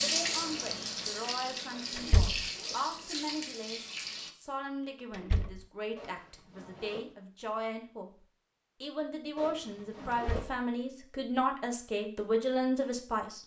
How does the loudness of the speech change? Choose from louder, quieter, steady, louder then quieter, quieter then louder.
louder.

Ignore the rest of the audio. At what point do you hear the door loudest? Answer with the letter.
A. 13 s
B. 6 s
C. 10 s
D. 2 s
D.